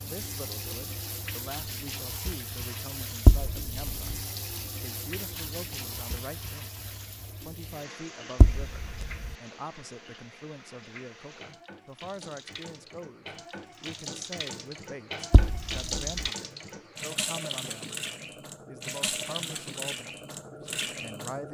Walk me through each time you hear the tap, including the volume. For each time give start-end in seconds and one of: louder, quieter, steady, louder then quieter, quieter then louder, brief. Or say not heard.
0.0-21.4 quieter then louder.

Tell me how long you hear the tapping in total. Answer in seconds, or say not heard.
3 s.